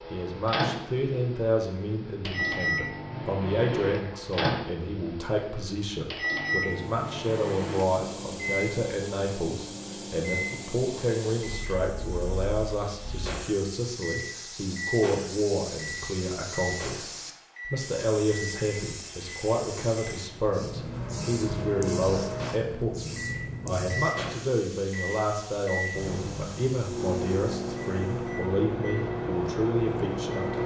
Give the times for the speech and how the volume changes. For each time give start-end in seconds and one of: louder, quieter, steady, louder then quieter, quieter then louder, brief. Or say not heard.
0.1-30.6 steady.